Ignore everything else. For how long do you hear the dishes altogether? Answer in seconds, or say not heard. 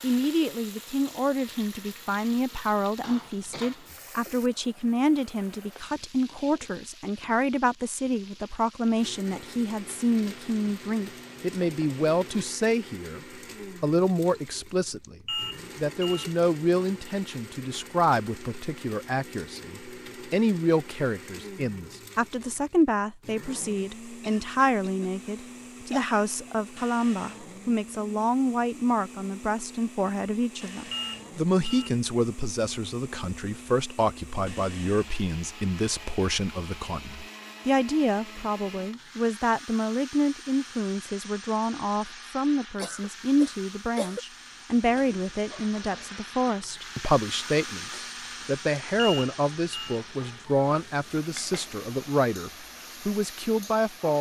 not heard.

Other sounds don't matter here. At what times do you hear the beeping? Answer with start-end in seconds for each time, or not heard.
15.0-16.4, 30.6-31.9, 49.0-50.0.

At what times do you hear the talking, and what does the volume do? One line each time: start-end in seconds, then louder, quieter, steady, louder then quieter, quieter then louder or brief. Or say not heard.
0.0-13.2 steady
13.8-15.2 brief
15.8-54.1 steady.